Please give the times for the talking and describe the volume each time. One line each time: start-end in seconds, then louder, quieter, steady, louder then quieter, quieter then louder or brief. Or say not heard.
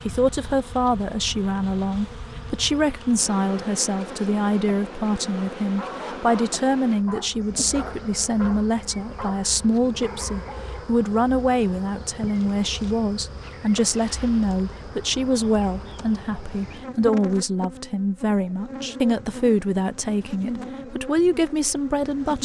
0.1-22.4 steady.